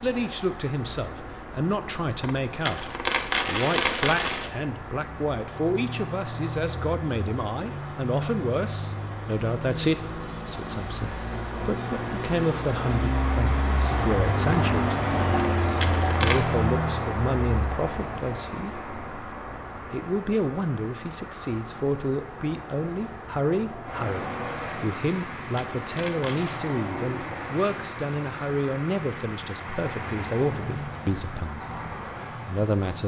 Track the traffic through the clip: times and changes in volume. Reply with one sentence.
You can hear the traffic from 0.0 to 33.0 s, getting louder then quieter.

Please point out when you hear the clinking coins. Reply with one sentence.
The clinking coins can be heard from 2.2 to 4.5 s, from 15.6 to 16.5 s and from 25.4 to 26.6 s.